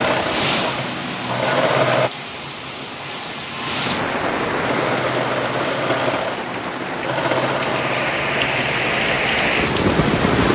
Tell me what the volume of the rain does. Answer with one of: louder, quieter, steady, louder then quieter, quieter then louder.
louder.